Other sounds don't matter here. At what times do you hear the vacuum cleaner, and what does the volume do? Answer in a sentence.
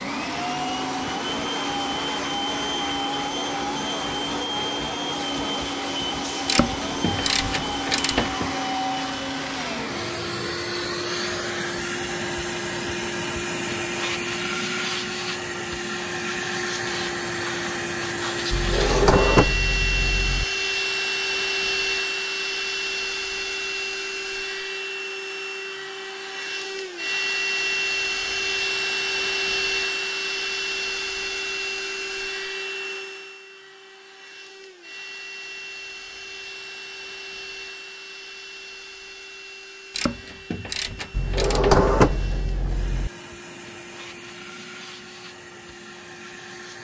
The vacuum cleaner can be heard from 0.0 to 46.7 s, getting quieter.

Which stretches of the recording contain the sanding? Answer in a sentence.
You can't hear the sanding here.